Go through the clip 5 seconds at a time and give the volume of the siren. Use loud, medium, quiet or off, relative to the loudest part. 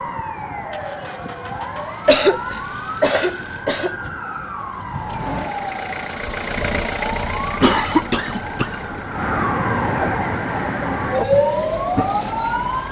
medium, medium, loud.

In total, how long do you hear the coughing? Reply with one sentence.
The coughing can be heard for 3 seconds in total.